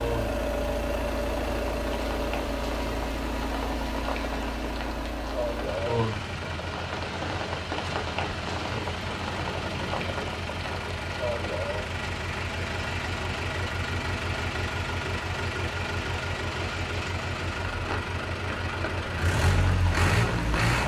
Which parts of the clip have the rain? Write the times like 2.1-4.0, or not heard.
0.0-20.8.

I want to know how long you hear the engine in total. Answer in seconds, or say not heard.
21 s.